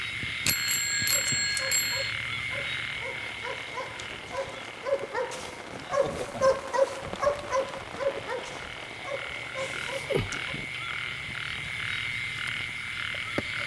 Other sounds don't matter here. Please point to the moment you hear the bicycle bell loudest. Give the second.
1 s.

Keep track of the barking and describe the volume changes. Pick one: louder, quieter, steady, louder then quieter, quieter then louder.
louder then quieter.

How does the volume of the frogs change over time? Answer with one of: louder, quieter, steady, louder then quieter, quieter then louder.
quieter then louder.